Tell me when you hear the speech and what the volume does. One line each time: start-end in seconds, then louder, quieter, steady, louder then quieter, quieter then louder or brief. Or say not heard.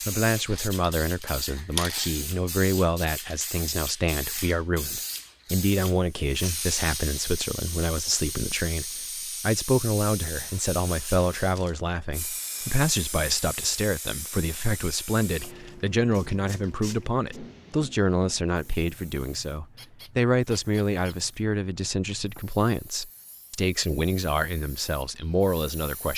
0.1-26.1 steady.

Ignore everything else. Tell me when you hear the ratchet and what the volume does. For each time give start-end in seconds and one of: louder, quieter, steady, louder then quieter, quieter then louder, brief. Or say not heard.
not heard.